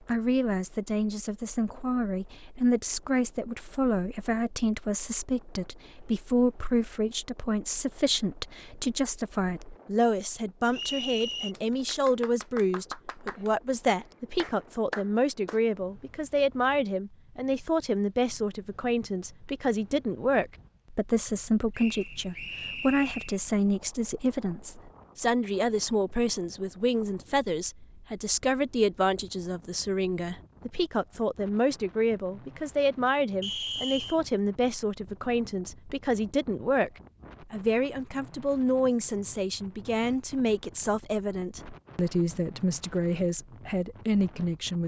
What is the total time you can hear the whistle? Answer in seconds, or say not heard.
3 s.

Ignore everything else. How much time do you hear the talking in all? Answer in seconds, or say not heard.
44 s.